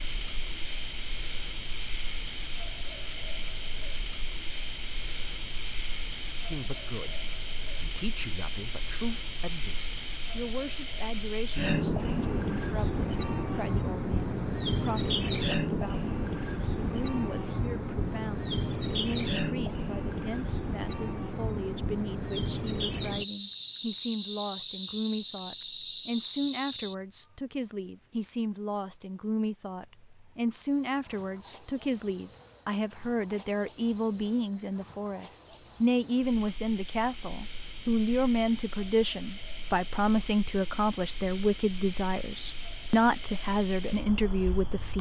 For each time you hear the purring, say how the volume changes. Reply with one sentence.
You can't hear the purring here.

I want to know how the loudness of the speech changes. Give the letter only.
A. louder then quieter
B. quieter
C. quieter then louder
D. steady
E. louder
E.